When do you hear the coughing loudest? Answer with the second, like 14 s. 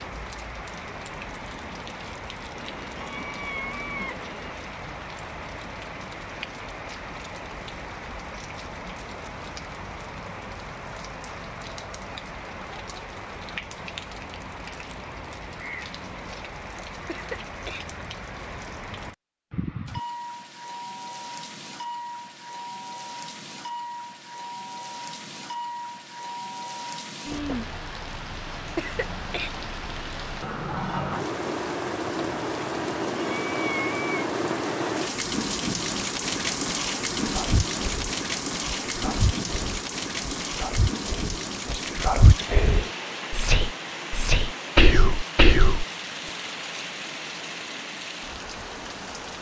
29 s.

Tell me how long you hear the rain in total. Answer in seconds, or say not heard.
49 s.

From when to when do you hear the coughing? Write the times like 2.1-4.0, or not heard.
17.1-17.9, 28.8-29.5.